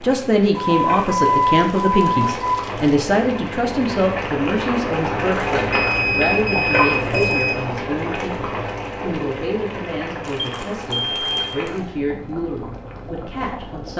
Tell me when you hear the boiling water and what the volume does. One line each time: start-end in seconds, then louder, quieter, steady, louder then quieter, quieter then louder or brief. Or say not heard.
0.0-13.9 louder then quieter.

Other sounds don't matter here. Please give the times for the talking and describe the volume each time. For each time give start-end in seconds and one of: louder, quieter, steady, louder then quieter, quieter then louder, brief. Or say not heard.
0.0-13.9 quieter.